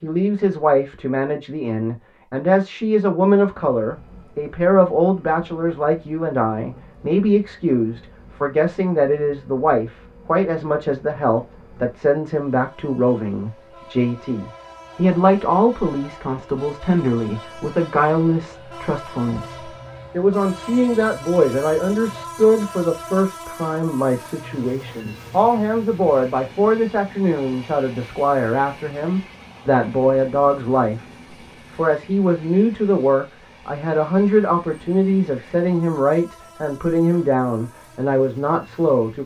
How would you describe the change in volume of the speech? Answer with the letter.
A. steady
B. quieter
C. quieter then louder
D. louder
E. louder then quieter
A.